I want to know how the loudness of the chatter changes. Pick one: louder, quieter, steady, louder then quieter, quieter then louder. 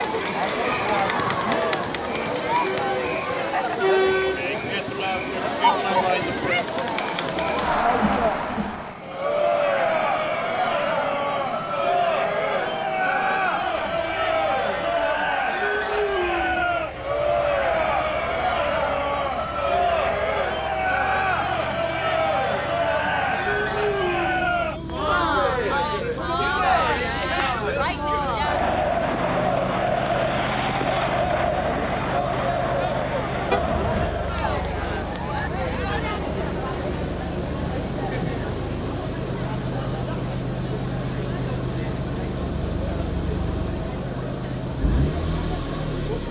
quieter.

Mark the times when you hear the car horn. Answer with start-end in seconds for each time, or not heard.
33.5-34.1.